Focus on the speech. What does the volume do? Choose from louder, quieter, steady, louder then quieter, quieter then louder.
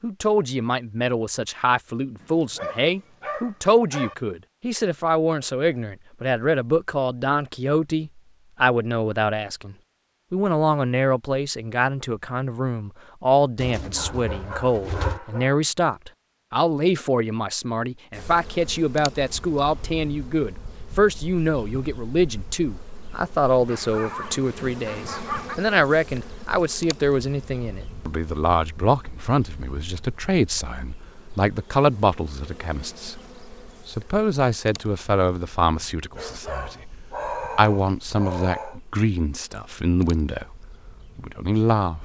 steady.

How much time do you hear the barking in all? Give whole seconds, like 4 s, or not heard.
8 s.